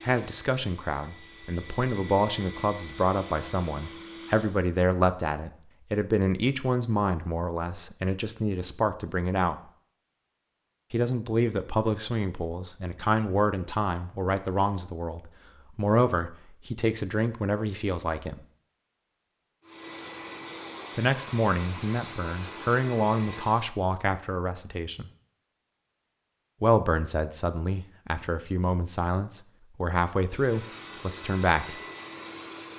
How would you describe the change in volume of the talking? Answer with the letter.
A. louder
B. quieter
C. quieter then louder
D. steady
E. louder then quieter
D.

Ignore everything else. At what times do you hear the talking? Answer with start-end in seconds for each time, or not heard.
0.0-9.6, 10.9-18.4, 20.9-25.1, 26.6-31.8.